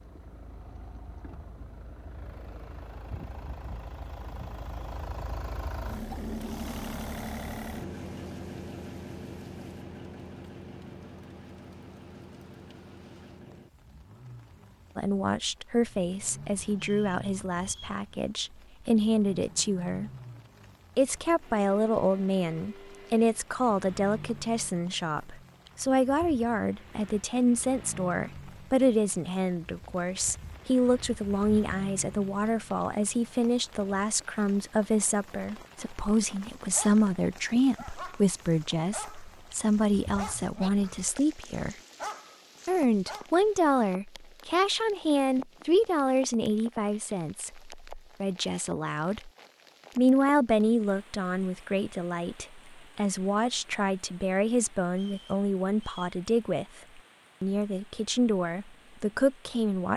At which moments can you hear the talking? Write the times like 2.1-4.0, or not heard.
14.9-20.1, 20.9-41.8, 42.6-49.3, 50.0-59.9.